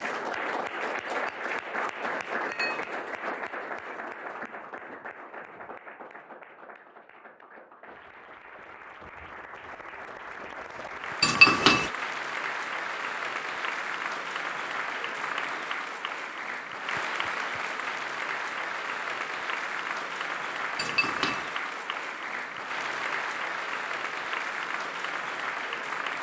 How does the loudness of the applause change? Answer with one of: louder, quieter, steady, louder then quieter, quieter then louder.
quieter then louder.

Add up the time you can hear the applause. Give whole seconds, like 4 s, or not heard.
26 s.